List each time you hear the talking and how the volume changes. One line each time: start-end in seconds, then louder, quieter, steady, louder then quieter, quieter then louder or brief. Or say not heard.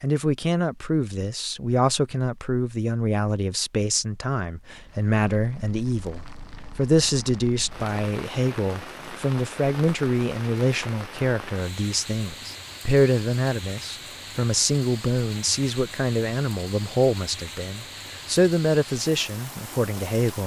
0.0-20.4 steady.